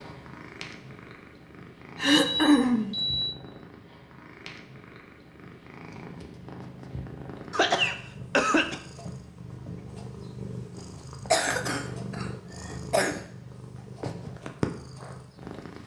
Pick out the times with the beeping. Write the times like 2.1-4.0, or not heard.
2.2-3.4.